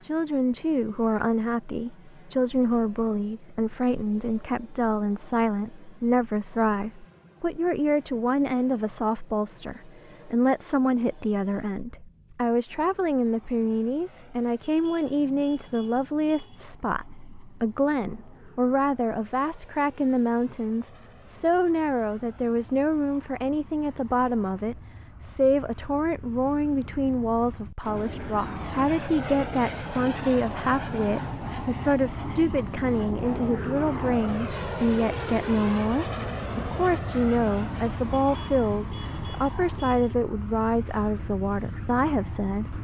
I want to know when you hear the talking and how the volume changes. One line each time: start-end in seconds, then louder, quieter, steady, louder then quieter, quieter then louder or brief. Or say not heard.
0.0-42.7 steady.